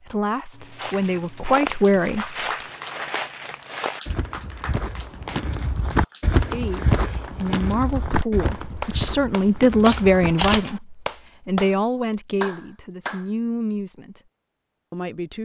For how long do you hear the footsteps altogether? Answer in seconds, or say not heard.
10 s.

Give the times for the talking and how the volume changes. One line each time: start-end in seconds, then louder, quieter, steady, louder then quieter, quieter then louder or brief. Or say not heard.
0.0-2.5 brief
6.5-14.2 louder then quieter
14.9-15.4 brief.